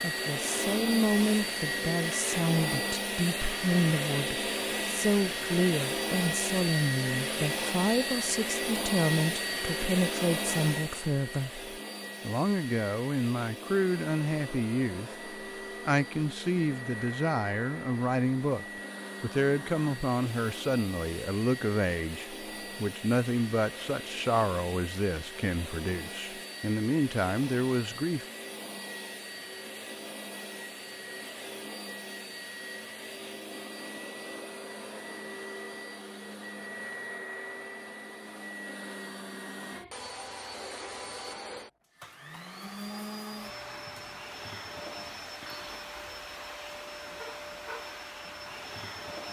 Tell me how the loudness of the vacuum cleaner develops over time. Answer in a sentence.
The loudness of the vacuum cleaner goes down.